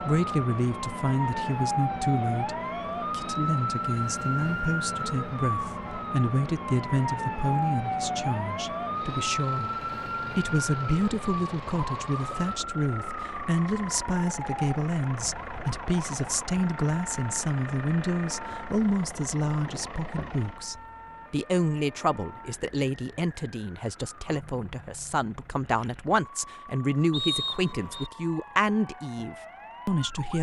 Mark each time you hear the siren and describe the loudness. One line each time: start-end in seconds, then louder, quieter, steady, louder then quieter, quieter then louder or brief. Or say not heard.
0.0-30.3 quieter.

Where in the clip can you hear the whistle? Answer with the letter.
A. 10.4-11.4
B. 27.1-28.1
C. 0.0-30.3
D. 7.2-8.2
B.